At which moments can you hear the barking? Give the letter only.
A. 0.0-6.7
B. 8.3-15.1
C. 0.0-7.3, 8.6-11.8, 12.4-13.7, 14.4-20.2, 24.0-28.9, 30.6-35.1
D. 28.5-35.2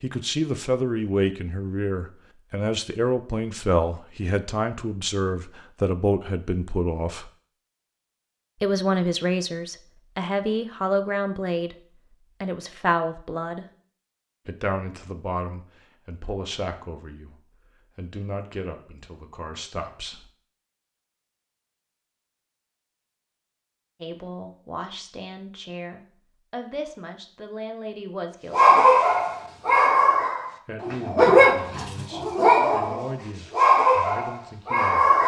D.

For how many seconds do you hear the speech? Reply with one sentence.
You can hear the speech for 27 seconds altogether.